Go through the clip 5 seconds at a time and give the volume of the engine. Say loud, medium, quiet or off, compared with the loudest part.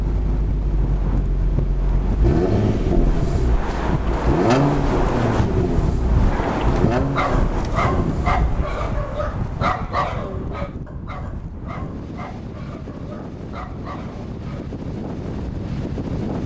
loud, loud, off, off.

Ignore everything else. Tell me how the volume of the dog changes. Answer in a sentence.
The volume of the dog goes down.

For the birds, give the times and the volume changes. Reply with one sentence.
The birds can't be heard in this clip.